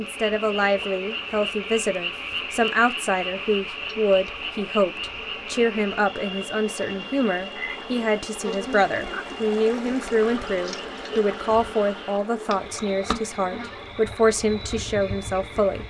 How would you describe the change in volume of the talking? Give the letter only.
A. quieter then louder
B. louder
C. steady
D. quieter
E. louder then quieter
C.